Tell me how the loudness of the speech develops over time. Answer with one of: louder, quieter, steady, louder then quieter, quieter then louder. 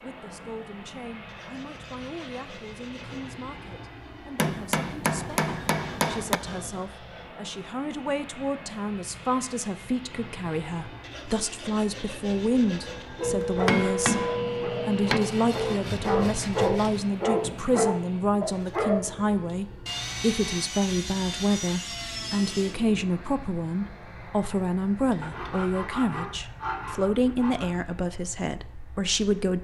louder.